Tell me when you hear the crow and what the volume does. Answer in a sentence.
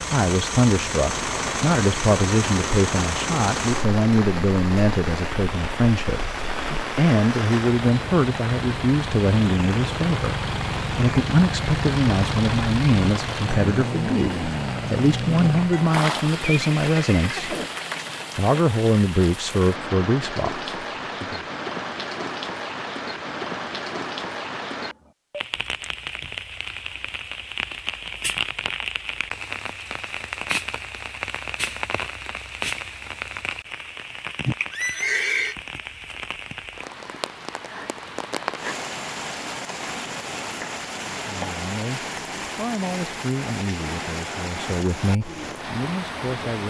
The crow can't be heard in this clip.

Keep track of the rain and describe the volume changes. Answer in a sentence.
The loudness of the rain stays about the same.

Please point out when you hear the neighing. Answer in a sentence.
The neighing can be heard from 15.9 to 17.7 s and from 34.5 to 35.5 s.